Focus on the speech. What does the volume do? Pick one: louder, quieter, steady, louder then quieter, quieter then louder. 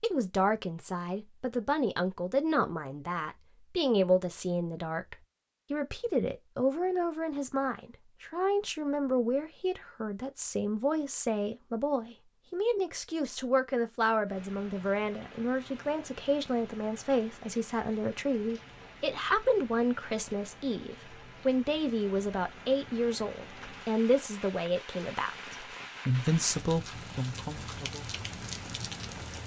steady.